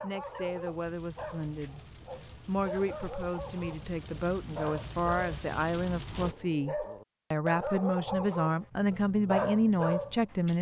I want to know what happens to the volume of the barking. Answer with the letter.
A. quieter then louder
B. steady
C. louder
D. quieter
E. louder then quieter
C.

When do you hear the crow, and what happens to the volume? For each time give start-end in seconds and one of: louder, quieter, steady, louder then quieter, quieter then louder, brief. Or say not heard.
not heard.